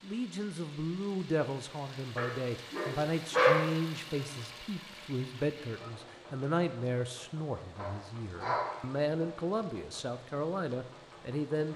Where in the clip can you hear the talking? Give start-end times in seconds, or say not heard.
0.0-11.7.